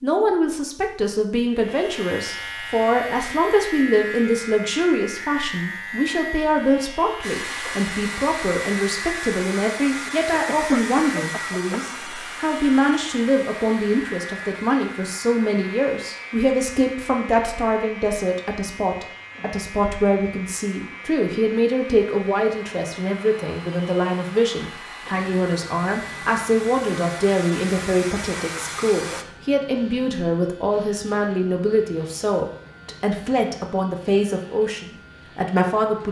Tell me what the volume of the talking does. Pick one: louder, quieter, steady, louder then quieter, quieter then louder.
steady.